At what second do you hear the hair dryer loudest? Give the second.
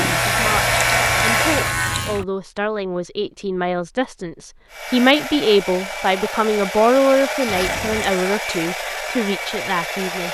1 s.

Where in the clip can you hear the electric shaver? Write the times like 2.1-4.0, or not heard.
0.0-2.2.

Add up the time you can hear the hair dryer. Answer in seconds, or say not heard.
7 s.